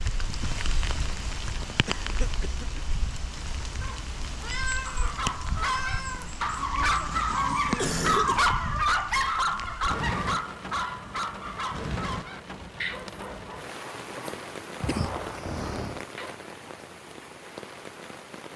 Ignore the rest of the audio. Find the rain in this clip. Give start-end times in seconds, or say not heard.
0.0-18.5.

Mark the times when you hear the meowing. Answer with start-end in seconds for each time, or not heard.
3.8-6.3.